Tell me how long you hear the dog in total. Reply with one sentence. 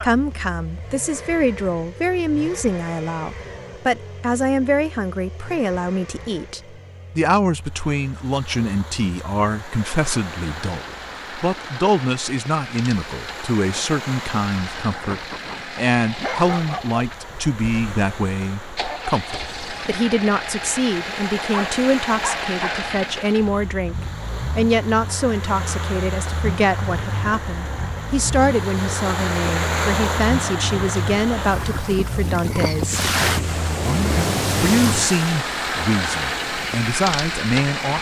You can hear the dog for 2 seconds altogether.